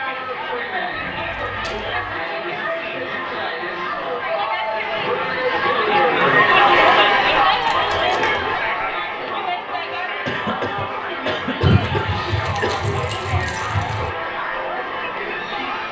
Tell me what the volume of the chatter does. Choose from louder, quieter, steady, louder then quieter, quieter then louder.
louder then quieter.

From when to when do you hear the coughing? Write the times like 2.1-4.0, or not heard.
10.2-12.9.